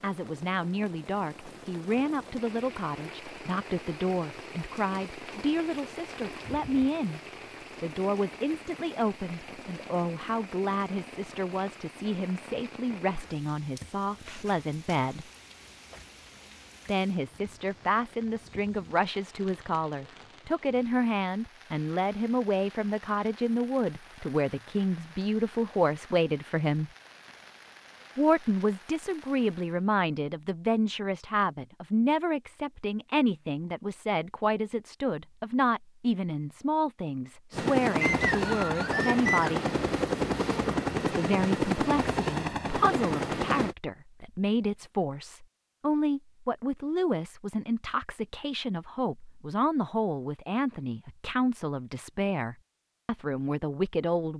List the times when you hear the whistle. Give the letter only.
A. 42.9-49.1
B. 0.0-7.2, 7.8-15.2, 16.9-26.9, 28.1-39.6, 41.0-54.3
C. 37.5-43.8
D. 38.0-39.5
D.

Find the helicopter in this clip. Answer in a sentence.
You can hear the helicopter from 37.5 to 43.8 s.